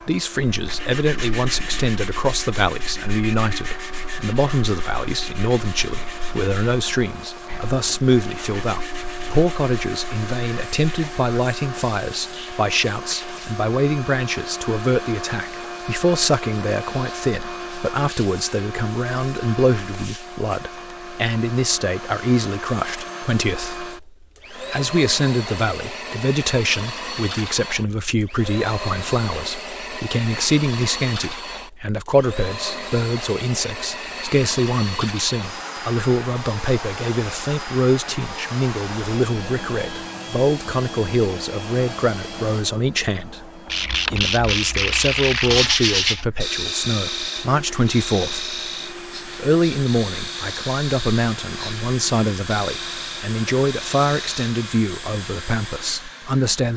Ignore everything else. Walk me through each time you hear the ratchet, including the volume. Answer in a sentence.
You can't hear the ratchet here.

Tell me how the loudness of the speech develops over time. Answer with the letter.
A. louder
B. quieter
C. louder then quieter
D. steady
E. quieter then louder
D.